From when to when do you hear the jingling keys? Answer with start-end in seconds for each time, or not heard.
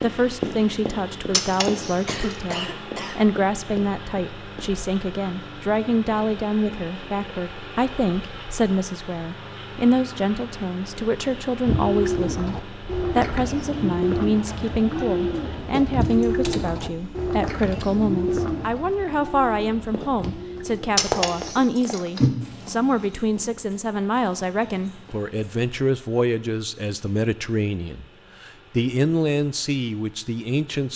1.3-2.2, 16.0-17.9, 20.9-22.4.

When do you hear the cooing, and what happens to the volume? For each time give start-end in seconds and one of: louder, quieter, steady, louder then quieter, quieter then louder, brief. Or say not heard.
11.7-21.6 quieter.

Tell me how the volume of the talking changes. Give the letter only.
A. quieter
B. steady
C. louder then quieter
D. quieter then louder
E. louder
B.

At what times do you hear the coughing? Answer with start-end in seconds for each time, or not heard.
1.9-3.3.